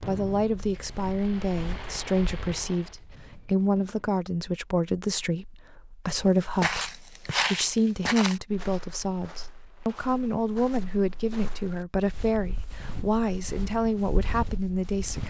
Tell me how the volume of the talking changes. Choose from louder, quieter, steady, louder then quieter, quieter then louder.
steady.